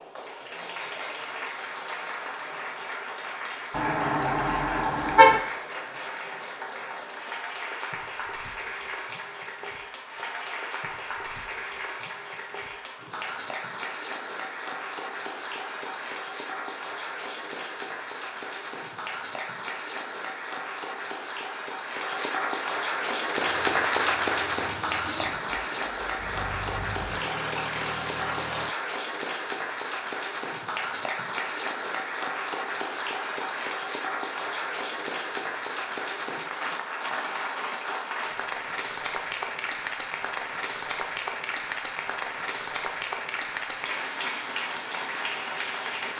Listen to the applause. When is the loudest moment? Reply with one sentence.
The loudest moment of the applause is at 24 seconds.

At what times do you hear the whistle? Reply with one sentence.
You can't hear the whistle here.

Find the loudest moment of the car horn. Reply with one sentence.
The volume of the car horn peaks at 5 seconds.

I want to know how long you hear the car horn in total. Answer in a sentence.
You can hear the car horn for 2 seconds altogether.